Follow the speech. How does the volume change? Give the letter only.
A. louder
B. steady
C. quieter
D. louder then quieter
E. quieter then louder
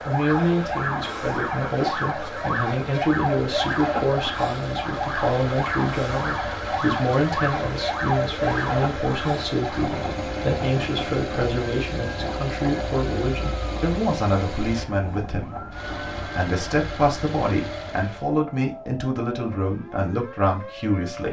B.